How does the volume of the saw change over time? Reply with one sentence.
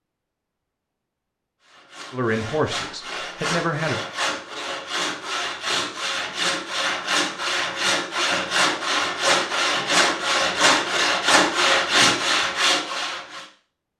The loudness of the saw goes up.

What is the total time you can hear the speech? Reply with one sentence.
The speech can be heard for 2 seconds in total.